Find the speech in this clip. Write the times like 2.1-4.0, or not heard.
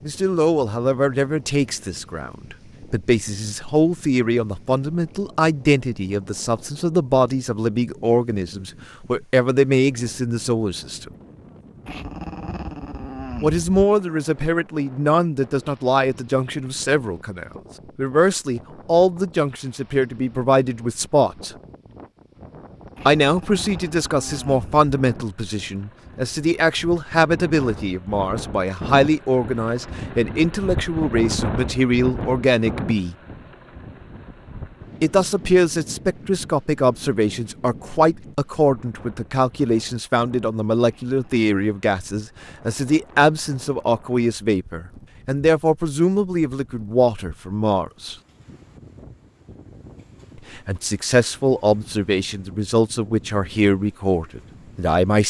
0.1-11.2, 13.4-21.5, 23.1-33.1, 35.0-48.1, 50.5-55.2.